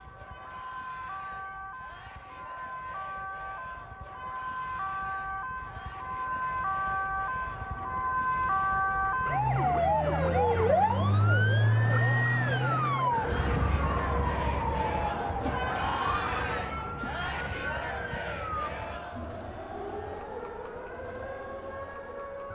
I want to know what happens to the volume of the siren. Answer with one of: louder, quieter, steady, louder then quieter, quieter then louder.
louder then quieter.